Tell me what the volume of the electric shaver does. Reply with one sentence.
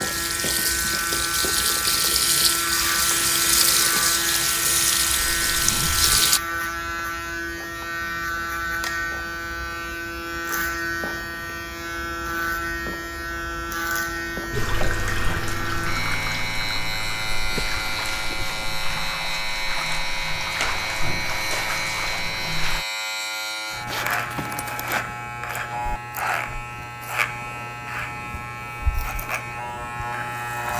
The volume of the electric shaver stays about the same.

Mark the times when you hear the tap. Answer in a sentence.
You can hear the tap from 0.0 to 6.4 s and from 14.5 to 22.9 s.